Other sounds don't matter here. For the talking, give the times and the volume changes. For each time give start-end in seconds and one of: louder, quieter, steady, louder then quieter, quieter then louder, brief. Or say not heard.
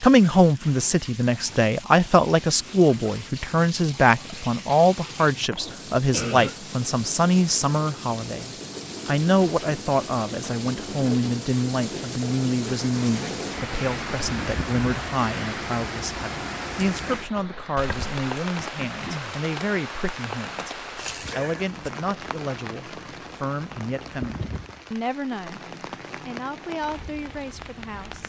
0.0-25.6 quieter
26.2-28.2 brief.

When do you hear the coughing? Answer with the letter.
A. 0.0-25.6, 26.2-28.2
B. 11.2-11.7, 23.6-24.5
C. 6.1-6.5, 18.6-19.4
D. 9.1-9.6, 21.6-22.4
C.